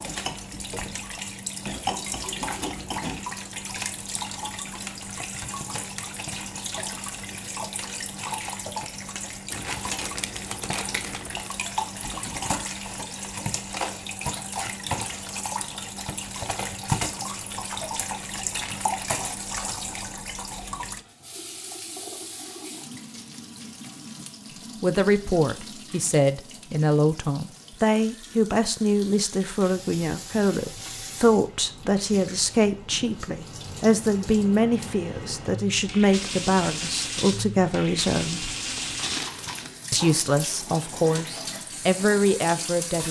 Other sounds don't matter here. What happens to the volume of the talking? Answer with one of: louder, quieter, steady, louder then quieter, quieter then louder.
steady.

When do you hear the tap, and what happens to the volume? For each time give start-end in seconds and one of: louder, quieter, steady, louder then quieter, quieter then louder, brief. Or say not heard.
0.0-43.0 quieter then louder.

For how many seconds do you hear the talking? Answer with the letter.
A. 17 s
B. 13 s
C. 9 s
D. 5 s
A.